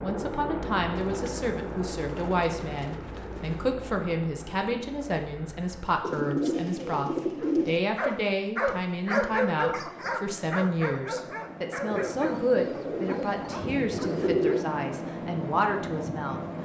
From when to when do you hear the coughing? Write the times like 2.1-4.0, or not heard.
not heard.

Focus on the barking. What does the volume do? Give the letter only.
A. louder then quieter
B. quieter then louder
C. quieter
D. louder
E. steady
C.